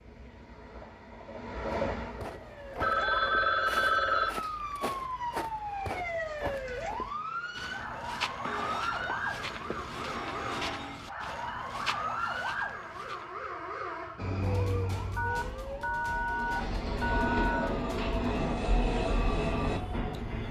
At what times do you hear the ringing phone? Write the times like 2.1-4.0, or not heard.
2.8-4.3, 8.4-11.1, 15.2-17.8.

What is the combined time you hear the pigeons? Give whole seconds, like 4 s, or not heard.
not heard.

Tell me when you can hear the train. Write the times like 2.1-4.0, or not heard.
0.0-3.1, 14.2-20.4.